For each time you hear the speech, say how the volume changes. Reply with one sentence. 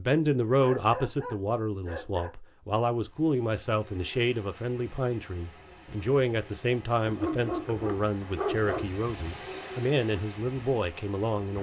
The speech can be heard from 0.0 to 11.5 s, at a steady volume.